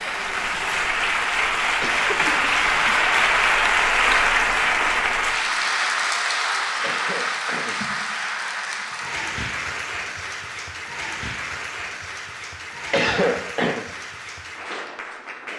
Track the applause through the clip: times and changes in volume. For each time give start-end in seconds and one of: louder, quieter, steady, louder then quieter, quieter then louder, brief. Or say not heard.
0.0-15.5 quieter.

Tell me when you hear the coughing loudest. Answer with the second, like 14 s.
13 s.